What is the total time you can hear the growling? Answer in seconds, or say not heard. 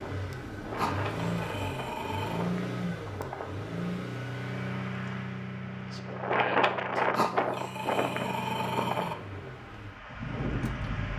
4 s.